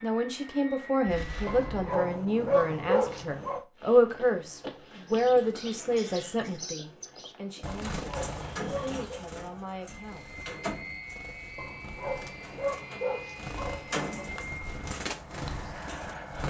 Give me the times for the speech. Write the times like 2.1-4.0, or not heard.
0.0-10.3.